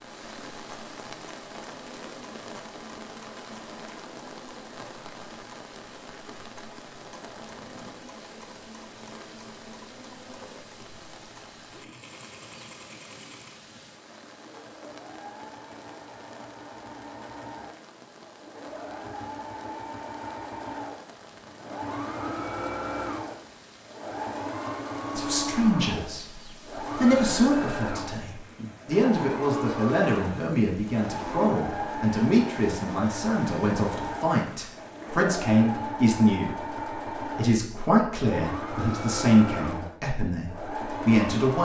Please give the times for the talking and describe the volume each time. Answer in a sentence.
The talking can be heard from 25.1 to 41.6 s, at a steady volume.